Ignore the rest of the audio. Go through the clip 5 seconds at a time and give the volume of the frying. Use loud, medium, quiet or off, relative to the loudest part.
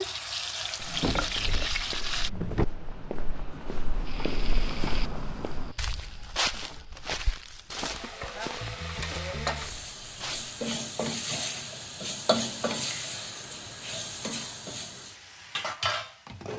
loud, medium, loud, loud.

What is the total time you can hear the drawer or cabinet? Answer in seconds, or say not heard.
2 s.